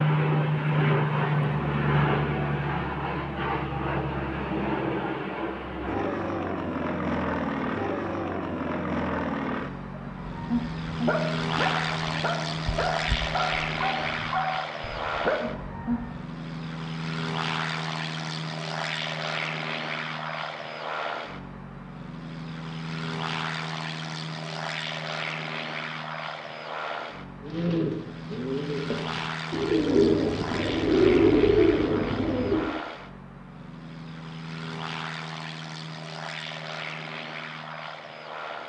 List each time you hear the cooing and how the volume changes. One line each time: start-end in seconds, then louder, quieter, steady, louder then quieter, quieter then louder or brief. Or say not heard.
27.4-32.7 louder.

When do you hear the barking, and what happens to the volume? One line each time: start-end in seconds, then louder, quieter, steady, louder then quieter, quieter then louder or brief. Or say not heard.
10.0-16.2 steady.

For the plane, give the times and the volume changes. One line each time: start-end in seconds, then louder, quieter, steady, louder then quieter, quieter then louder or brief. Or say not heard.
0.0-38.6 quieter.